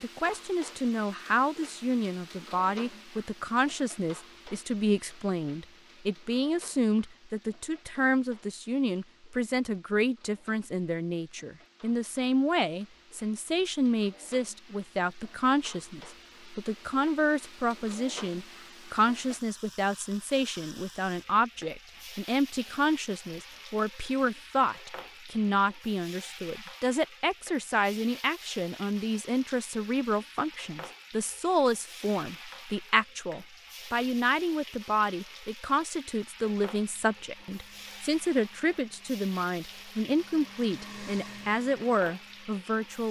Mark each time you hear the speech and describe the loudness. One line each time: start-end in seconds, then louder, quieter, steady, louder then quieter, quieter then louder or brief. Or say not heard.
0.0-43.0 steady.